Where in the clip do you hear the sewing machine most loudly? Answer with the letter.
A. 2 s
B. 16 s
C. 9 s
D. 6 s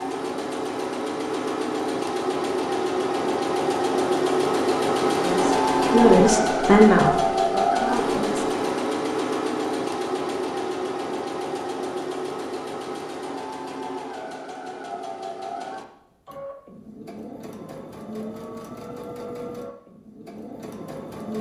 D.